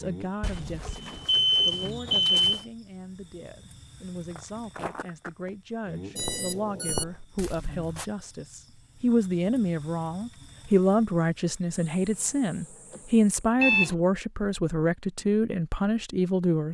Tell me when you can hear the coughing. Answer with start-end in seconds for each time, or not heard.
not heard.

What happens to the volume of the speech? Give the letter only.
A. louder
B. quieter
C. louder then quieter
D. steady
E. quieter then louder
A.